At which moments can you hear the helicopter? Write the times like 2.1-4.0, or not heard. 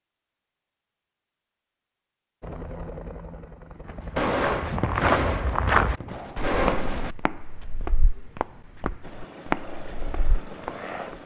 2.4-4.2, 9.0-11.2.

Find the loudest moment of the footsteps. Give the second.
6 s.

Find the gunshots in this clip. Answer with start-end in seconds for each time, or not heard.
4.2-7.2.